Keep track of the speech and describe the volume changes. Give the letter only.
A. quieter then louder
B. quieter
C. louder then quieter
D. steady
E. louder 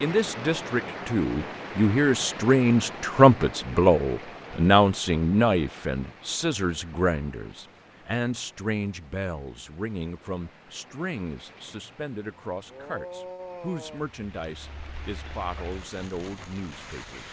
B.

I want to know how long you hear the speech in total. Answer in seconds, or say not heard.
17 s.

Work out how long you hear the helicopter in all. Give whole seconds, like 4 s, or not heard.
not heard.